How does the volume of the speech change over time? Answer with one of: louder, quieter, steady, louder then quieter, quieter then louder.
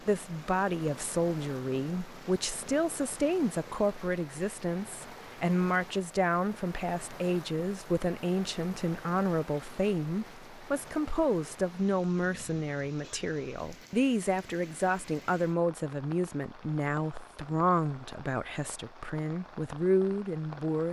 steady.